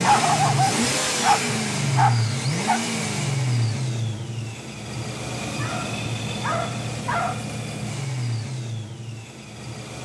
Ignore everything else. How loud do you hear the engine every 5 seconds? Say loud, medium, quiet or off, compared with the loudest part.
loud, medium.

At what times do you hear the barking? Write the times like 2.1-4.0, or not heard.
0.0-2.8, 5.5-7.5.